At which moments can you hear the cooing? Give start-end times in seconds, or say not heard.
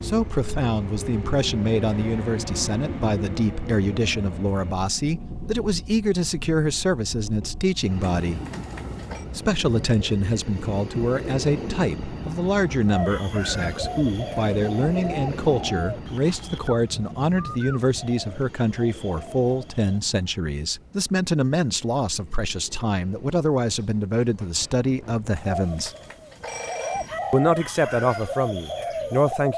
12.8-20.0, 25.4-29.5.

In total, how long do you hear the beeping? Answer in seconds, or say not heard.
3 s.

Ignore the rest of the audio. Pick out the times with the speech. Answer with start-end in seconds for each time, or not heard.
0.0-8.4, 9.3-25.9, 27.3-29.5.